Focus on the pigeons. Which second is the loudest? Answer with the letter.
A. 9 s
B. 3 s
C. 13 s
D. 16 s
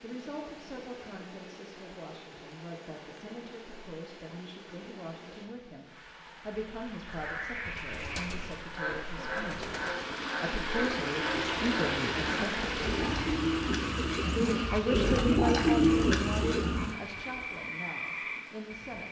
D.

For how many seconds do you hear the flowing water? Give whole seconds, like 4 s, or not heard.
19 s.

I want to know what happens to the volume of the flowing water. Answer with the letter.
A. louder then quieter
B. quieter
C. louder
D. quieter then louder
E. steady
A.